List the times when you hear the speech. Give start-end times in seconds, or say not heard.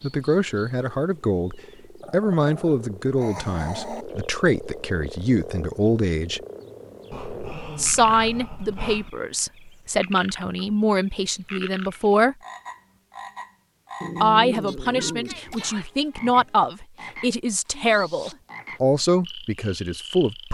0.0-6.4, 7.8-12.3, 14.2-20.5.